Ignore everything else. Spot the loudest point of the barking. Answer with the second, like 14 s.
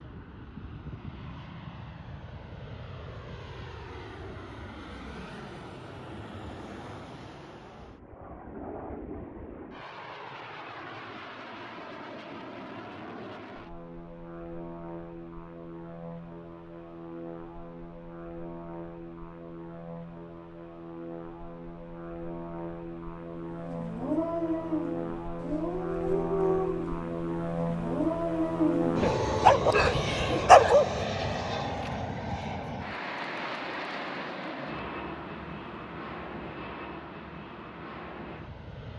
31 s.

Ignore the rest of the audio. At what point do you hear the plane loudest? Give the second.
29 s.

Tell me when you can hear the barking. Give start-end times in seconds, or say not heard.
23.5-31.0.